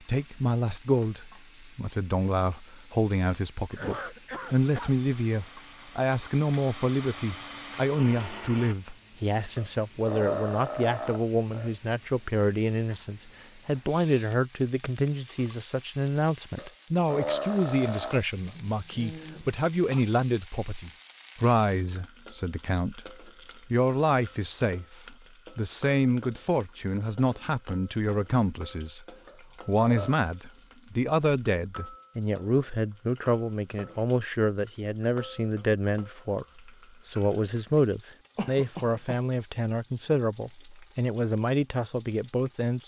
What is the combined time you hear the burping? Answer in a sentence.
You can hear the burping for 5 seconds altogether.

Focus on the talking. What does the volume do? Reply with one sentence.
The volume of the talking stays about the same.